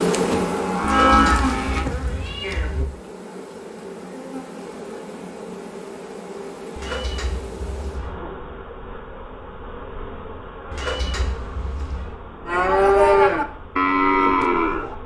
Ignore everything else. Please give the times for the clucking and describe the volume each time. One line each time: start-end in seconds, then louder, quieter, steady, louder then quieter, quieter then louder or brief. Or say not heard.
not heard.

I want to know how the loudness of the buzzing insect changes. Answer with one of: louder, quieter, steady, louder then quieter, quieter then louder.
quieter.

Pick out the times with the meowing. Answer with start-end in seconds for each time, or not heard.
0.8-2.9, 6.8-8.1, 10.7-12.1.